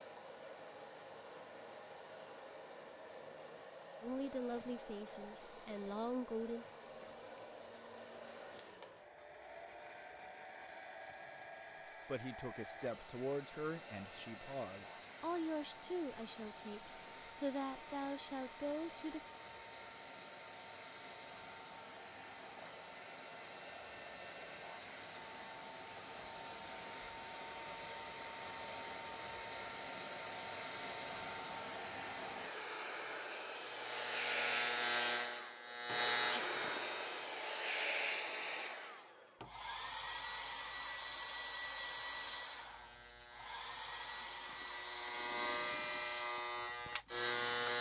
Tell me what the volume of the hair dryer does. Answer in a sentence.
The volume of the hair dryer goes up.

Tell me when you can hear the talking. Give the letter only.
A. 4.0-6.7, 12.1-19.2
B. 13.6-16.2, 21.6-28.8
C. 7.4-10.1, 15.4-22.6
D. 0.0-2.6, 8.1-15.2
A.